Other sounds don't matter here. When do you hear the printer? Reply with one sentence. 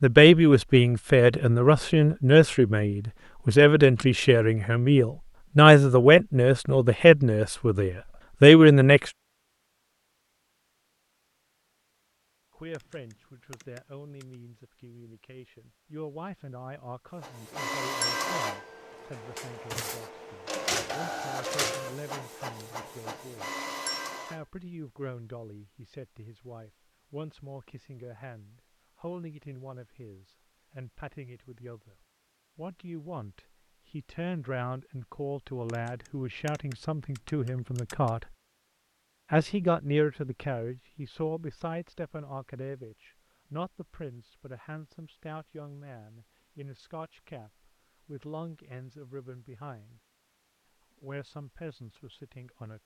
You can hear the printer from 17.2 to 24.4 s.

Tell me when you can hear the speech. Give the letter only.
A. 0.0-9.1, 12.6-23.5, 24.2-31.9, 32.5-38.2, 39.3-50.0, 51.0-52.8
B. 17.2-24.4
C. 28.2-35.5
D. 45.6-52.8
A.